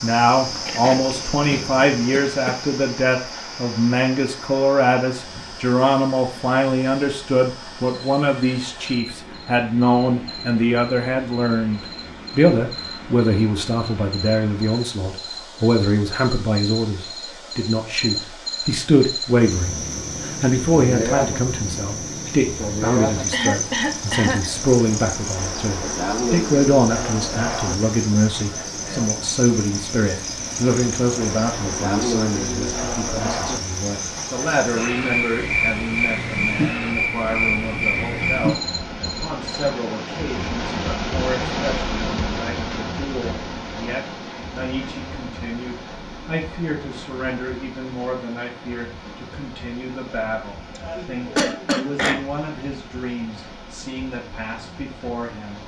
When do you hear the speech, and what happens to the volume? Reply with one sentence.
The speech can be heard from 0.0 to 55.6 s, getting quieter.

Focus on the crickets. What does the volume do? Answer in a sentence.
The volume of the crickets goes up.